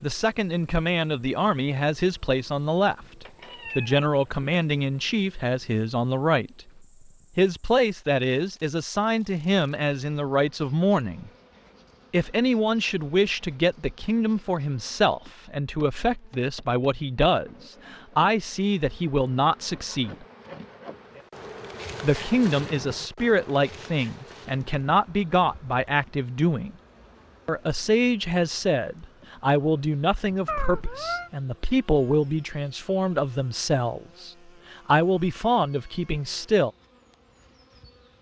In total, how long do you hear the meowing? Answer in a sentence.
You can hear the meowing for 2 seconds altogether.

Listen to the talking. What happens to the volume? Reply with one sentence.
The loudness of the talking stays about the same.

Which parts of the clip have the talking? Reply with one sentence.
The talking can be heard from 0.0 to 6.7 s, from 7.3 to 11.3 s, from 12.1 to 20.2 s, from 22.0 to 26.7 s and from 27.4 to 36.7 s.